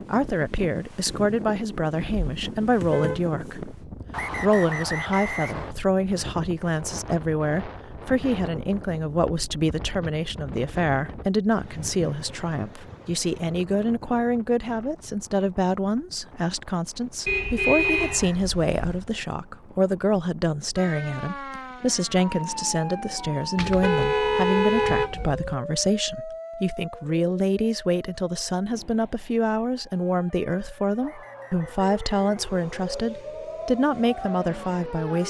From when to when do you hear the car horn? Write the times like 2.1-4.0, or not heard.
1.9-3.7, 17.2-19.1, 23.6-25.6.